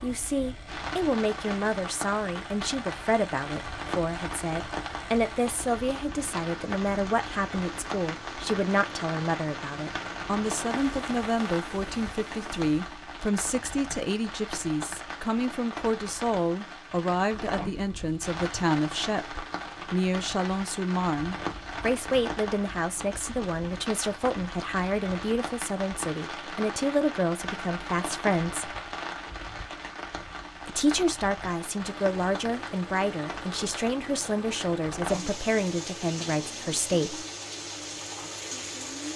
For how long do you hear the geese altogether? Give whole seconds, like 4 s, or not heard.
not heard.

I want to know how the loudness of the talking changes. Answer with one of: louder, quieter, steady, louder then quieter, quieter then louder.
steady.